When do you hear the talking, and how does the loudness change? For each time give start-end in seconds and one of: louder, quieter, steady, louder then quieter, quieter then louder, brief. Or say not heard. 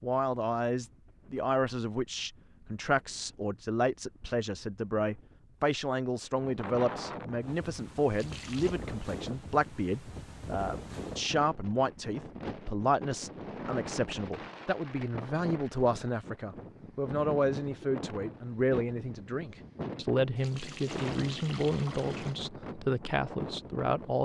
0.0-24.1 steady.